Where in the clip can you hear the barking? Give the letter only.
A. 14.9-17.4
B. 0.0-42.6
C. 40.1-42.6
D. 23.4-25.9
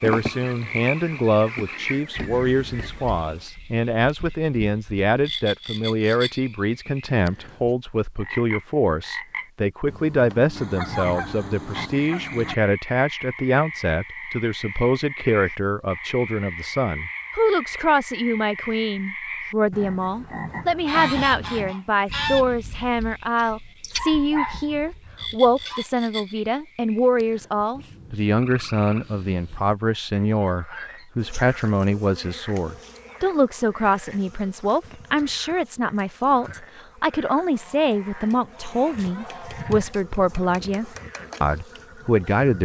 D.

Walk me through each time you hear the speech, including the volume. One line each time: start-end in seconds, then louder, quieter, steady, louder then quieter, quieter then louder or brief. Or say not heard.
0.0-42.6 steady.